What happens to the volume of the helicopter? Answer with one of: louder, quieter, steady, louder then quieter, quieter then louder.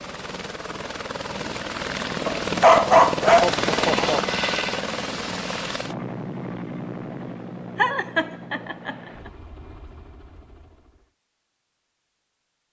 louder then quieter.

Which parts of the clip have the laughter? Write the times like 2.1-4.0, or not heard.
3.4-4.2, 7.8-9.3.